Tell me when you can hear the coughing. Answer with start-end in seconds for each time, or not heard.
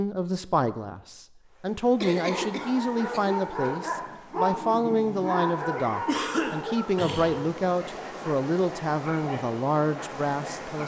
2.0-3.8, 6.0-7.5.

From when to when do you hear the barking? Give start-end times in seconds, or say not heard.
2.2-10.8.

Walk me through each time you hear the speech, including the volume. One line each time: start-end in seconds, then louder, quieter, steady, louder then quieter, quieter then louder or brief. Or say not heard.
0.0-10.8 steady.